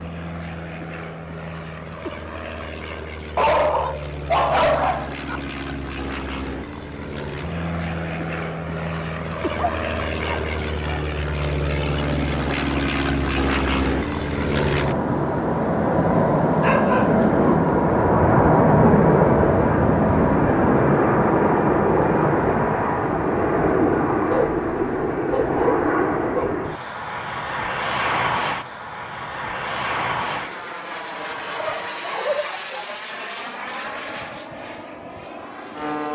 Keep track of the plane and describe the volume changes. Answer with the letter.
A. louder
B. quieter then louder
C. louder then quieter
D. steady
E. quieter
C.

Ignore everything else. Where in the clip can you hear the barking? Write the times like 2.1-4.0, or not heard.
3.4-5.4, 9.6-11.0, 16.4-17.6, 24.2-26.6, 31.4-33.0.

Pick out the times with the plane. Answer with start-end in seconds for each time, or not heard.
0.0-36.1.